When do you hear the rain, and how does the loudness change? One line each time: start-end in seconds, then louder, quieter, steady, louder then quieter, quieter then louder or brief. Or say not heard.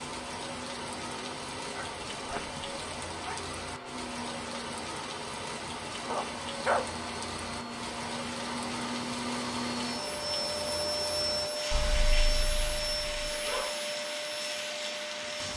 0.0-15.5 steady.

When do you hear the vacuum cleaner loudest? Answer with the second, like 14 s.
11 s.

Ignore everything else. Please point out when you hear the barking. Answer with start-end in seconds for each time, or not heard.
1.7-3.4, 6.0-6.8, 11.7-13.7.